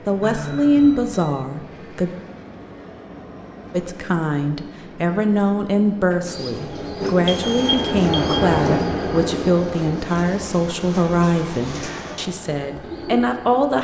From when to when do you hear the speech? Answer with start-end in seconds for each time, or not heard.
0.1-2.1, 3.7-13.7.